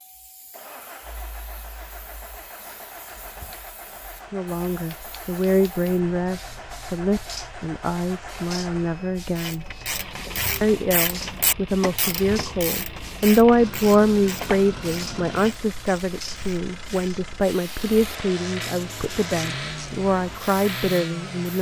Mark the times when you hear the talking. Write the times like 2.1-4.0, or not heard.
4.3-9.7, 10.6-21.5.